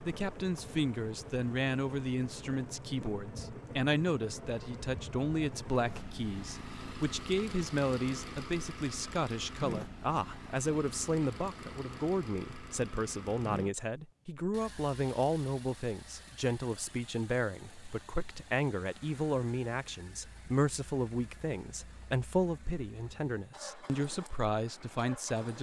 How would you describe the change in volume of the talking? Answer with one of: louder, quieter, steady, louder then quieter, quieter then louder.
steady.